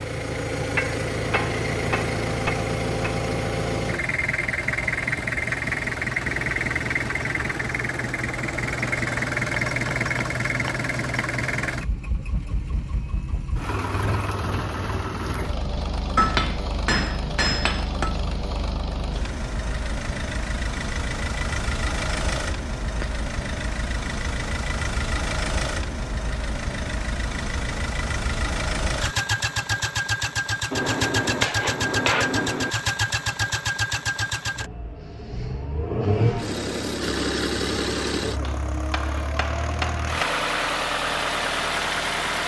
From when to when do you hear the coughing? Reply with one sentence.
You can't hear the coughing here.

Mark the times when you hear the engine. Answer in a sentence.
You can hear the engine from 0.0 to 42.4 s.